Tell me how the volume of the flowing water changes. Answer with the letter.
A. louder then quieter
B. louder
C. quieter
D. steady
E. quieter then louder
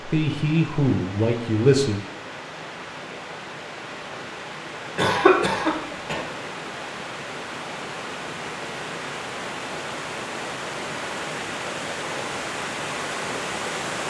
B.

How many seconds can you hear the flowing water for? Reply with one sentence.
You can hear the flowing water for 14 seconds altogether.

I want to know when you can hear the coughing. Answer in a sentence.
The coughing can be heard from 5.0 to 6.2 s.